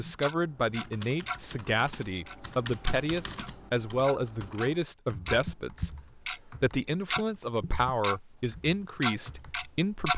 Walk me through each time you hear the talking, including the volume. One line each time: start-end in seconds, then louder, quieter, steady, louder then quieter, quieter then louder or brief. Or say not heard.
0.0-10.1 steady.